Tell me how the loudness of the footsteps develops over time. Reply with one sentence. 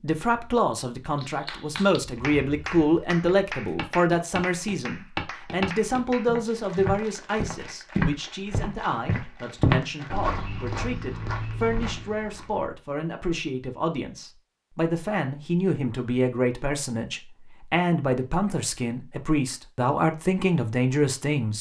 The volume of the footsteps goes up, then down.